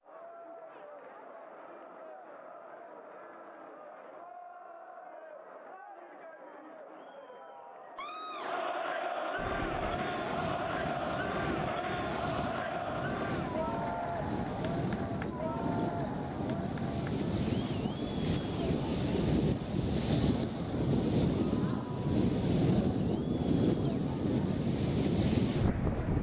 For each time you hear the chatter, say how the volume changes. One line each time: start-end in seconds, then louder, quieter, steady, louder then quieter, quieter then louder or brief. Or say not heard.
0.0-26.1 louder then quieter.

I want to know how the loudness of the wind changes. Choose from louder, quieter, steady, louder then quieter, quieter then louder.
louder.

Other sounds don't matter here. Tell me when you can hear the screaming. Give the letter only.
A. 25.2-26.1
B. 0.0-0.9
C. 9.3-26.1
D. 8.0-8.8
D.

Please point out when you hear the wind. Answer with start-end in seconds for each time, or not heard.
9.3-26.1.